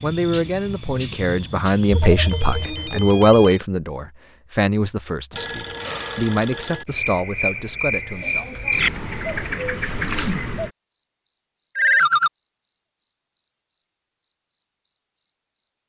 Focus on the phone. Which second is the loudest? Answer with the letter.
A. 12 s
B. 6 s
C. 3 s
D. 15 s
A.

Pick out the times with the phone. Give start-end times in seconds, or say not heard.
1.9-3.6, 5.3-6.8, 11.8-12.3.